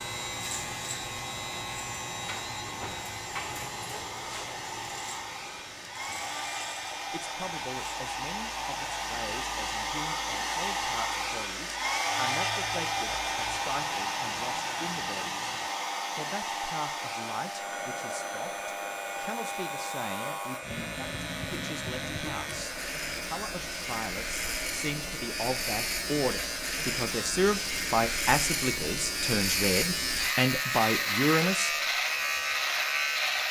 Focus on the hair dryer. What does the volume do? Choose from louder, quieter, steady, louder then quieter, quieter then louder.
louder then quieter.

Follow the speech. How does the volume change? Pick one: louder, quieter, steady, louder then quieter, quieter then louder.
louder.